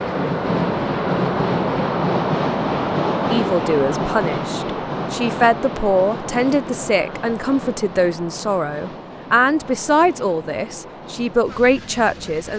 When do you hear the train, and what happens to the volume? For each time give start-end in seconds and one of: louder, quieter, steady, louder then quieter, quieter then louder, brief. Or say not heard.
0.0-12.5 quieter.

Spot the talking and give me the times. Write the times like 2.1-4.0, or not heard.
3.3-12.5.